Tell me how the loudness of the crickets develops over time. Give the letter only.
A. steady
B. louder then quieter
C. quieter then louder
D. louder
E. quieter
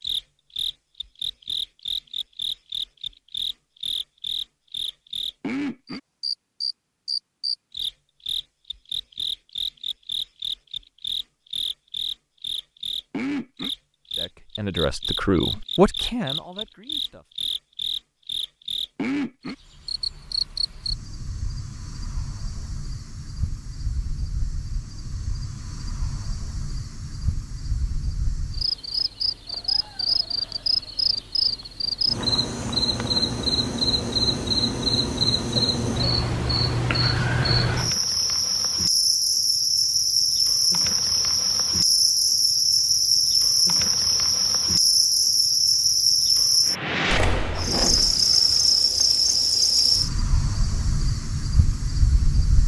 D.